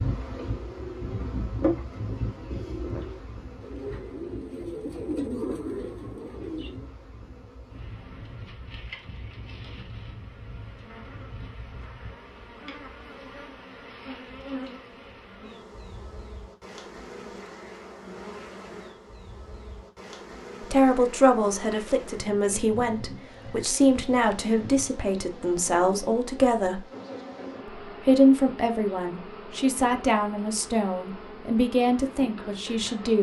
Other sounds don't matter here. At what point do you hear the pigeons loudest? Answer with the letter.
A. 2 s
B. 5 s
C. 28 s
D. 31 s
B.